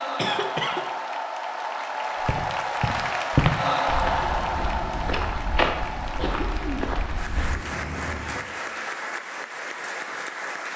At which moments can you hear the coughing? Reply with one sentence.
You can hear the coughing from 0.1 to 0.8 s and from 6.2 to 8.6 s.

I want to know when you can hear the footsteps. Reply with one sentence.
You can hear the footsteps from 2.2 to 7.6 s.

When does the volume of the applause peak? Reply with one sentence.
The loudest moment of the applause is at 4 seconds.